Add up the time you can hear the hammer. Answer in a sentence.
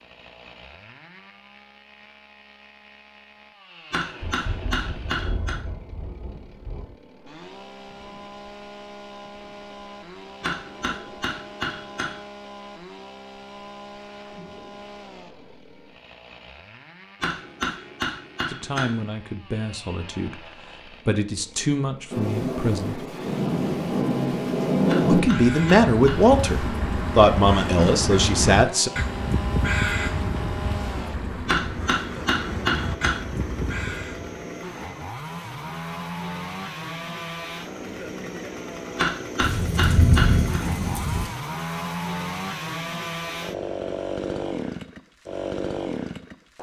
The hammer can be heard for 10 seconds in total.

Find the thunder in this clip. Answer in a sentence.
You can hear the thunder from 4.2 to 6.9 s, from 22.1 to 25.2 s and from 39.4 to 41.3 s.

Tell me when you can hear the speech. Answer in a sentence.
You can hear the speech from 18.5 to 23.1 s and from 25.1 to 28.9 s.